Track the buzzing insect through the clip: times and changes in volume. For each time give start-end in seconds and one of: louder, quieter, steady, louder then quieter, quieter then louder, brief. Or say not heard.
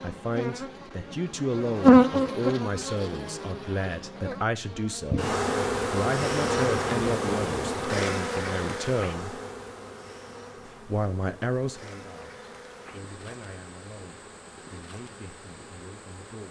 0.0-16.4 quieter.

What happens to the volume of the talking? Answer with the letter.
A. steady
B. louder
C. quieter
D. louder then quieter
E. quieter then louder
C.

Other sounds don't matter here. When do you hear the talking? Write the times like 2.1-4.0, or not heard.
0.0-9.4, 10.7-16.4.